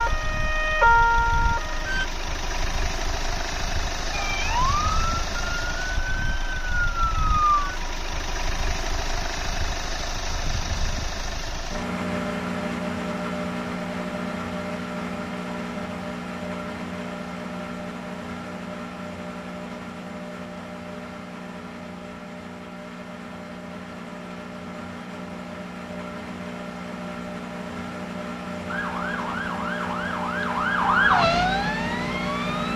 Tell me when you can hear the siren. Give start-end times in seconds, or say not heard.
0.0-2.0, 4.1-7.8, 28.6-32.7.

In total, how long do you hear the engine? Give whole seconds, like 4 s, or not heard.
33 s.